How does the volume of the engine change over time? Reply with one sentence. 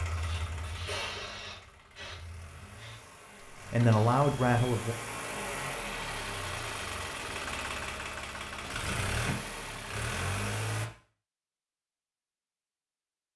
The loudness of the engine goes up.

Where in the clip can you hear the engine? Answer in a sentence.
The engine can be heard from 0.0 to 10.9 s.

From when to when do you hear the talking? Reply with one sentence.
The talking can be heard from 3.7 to 5.0 s.